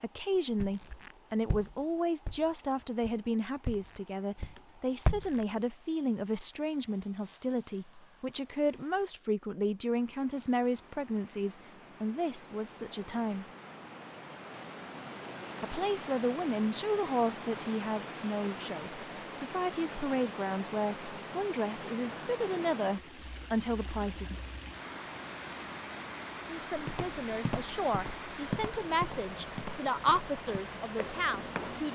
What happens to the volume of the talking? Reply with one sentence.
The loudness of the talking stays about the same.